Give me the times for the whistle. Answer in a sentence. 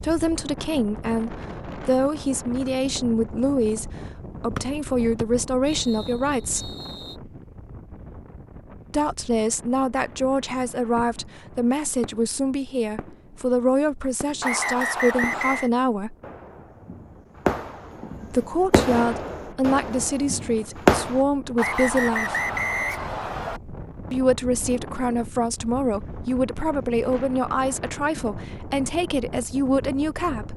The whistle can be heard from 4.5 to 7.2 s, from 14.4 to 15.7 s and from 21.6 to 23.6 s.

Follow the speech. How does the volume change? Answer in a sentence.
The volume of the speech stays about the same.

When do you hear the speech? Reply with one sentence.
You can hear the speech from 0.0 to 6.8 s, from 8.9 to 16.1 s, from 18.2 to 22.4 s and from 24.1 to 30.5 s.